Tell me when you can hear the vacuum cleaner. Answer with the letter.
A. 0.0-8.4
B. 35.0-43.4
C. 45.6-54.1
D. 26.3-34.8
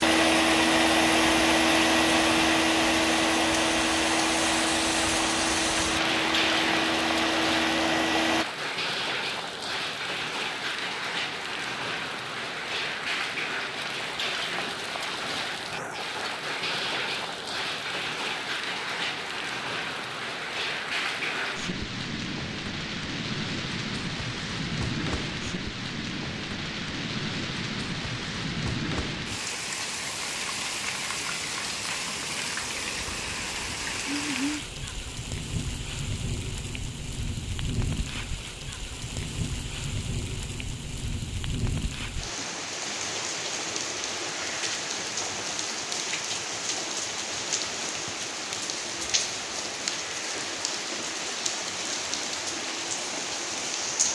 A.